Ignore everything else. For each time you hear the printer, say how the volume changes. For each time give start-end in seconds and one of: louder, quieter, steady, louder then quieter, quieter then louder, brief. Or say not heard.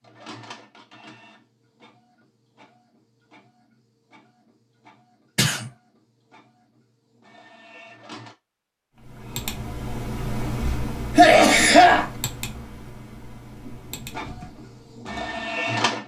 0.0-8.3 quieter then louder
14.1-16.0 brief.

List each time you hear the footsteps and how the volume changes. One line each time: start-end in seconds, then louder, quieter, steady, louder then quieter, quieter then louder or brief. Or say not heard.
not heard.